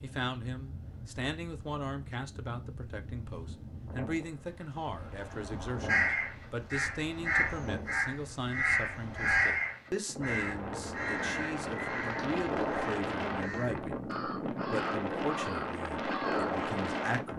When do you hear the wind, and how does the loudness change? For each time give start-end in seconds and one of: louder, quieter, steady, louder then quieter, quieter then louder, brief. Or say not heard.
0.0-17.3 louder.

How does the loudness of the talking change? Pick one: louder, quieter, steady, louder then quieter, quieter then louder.
steady.